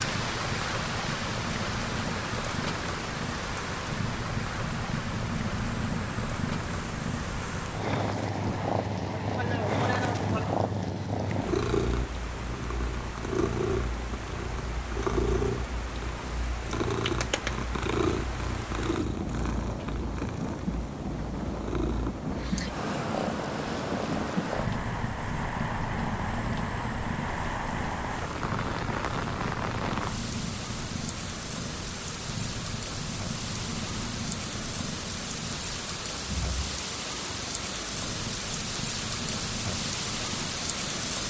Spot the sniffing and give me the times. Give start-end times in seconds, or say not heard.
9.2-10.4.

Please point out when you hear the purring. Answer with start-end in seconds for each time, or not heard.
0.0-41.2.